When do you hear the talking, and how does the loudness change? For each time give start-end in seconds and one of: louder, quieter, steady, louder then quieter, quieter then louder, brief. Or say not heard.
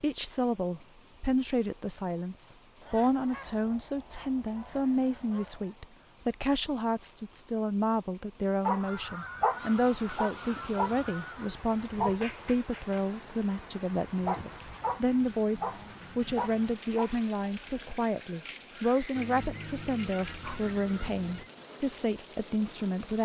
0.0-23.2 steady.